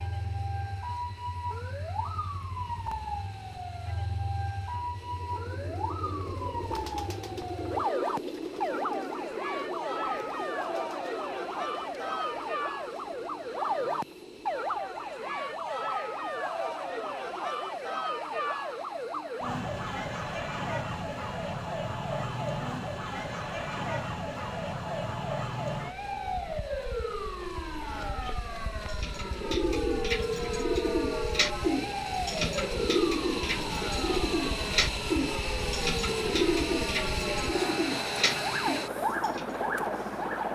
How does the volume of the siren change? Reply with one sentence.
The volume of the siren stays about the same.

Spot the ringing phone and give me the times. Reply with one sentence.
The ringing phone can be heard from 29.7 to 31.3 s.